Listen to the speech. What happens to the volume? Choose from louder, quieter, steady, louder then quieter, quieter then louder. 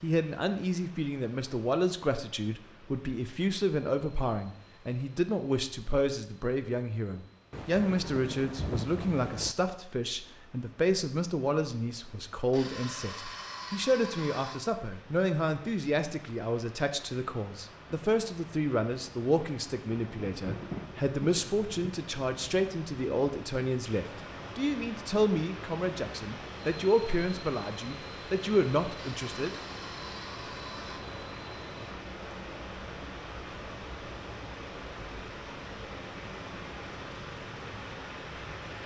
steady.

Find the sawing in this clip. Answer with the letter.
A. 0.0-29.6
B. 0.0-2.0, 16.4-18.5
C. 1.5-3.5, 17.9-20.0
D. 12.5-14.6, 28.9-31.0
D.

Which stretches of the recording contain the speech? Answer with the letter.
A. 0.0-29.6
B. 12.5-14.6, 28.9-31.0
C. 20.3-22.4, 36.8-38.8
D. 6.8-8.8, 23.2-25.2
A.